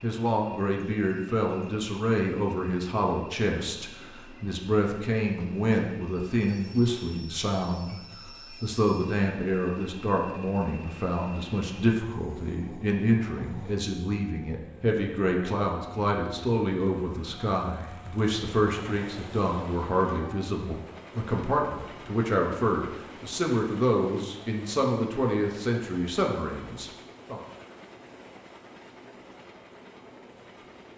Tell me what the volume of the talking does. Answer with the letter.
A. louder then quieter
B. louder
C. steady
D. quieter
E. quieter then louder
C.